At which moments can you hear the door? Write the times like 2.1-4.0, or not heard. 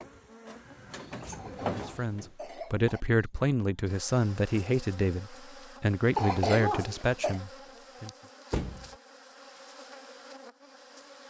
0.5-2.3, 8.5-8.9.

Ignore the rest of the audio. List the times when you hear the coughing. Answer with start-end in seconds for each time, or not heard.
1.3-3.0, 6.2-7.4.